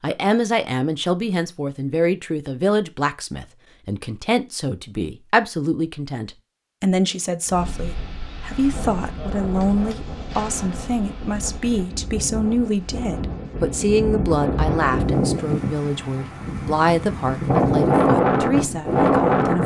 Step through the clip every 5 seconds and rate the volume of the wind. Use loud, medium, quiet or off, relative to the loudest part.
off, quiet, medium, loud.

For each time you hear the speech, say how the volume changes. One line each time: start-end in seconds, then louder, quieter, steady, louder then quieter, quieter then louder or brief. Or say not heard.
0.0-19.6 steady.